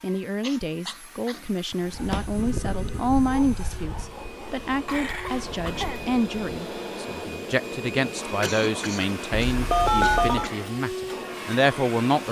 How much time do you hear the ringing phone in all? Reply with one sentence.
You can hear the ringing phone for 2 seconds altogether.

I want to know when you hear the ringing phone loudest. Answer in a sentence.
The loudest moment of the ringing phone is at 10 seconds.